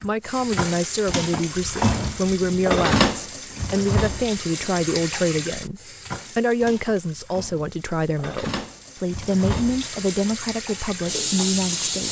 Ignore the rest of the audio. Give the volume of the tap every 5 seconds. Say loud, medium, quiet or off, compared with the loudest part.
loud, medium, loud.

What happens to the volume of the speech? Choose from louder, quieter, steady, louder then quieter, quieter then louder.
steady.